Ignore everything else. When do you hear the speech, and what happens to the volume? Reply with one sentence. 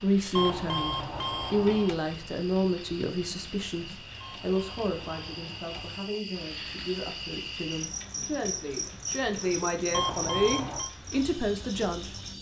The speech can be heard from 0.0 to 12.2 s, getting quieter then louder.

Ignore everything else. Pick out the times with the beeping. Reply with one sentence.
You can hear the beeping from 0.3 to 2.0 s, from 4.2 to 6.2 s and from 9.9 to 10.9 s.